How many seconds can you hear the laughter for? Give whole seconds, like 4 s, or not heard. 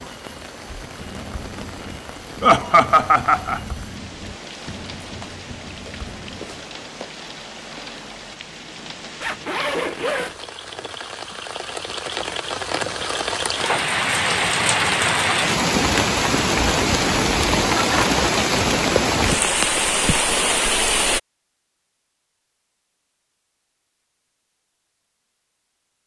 2 s.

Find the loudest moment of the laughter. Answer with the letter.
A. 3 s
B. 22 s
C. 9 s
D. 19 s
A.